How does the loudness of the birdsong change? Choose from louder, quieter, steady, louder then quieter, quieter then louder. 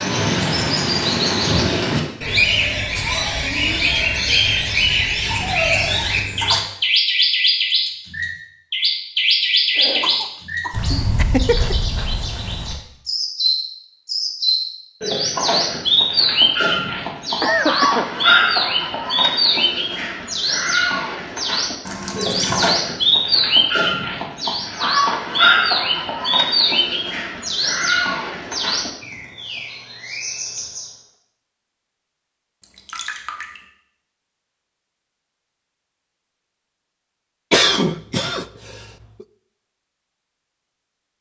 steady.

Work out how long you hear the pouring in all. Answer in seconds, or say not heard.
3 s.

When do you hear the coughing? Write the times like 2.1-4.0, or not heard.
9.8-11.8, 17.4-18.1, 37.5-39.2.